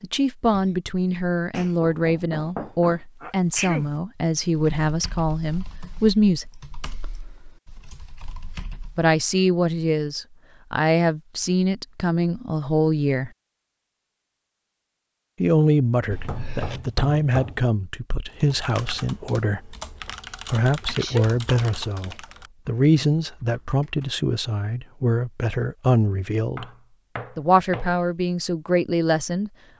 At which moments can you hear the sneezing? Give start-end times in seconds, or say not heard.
3.2-3.9, 16.1-16.9, 20.9-21.4.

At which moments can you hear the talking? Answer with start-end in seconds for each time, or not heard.
0.0-6.5, 8.9-13.3, 15.4-19.8, 20.5-26.6, 27.4-29.5.